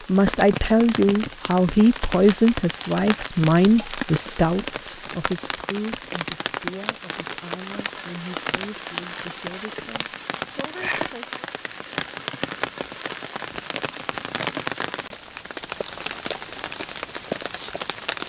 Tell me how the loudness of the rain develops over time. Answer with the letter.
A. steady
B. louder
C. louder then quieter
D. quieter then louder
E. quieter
A.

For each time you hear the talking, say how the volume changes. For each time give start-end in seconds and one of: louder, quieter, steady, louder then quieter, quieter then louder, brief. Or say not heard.
0.1-11.4 quieter.